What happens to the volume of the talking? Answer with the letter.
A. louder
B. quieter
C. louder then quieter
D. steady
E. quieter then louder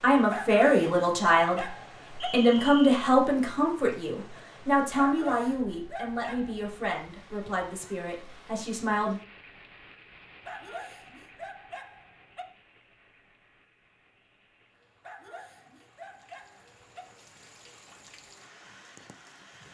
B.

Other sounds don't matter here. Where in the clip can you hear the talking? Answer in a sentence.
You can hear the talking from 0.0 to 9.2 s.